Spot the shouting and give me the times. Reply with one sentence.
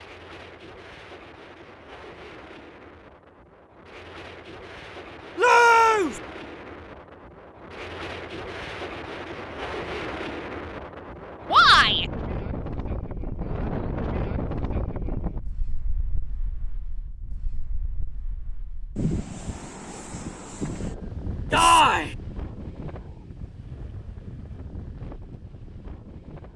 The shouting can be heard from 5.3 to 6.2 s, from 11.5 to 12.1 s and from 21.5 to 22.1 s.